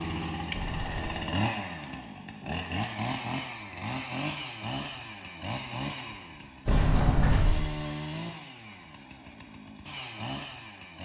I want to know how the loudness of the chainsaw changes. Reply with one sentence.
The loudness of the chainsaw goes down.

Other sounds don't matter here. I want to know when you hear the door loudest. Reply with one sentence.
The volume of the door peaks at 7 seconds.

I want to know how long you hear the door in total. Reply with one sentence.
You can hear the door for 2 seconds altogether.